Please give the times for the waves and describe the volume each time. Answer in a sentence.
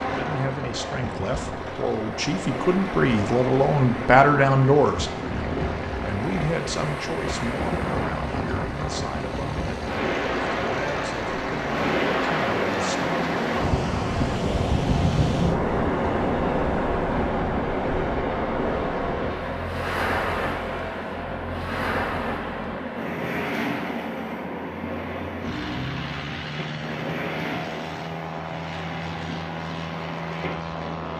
You can hear the waves from 0.0 to 31.1 s, getting louder then quieter.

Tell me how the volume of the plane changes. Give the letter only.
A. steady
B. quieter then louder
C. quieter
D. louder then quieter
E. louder
A.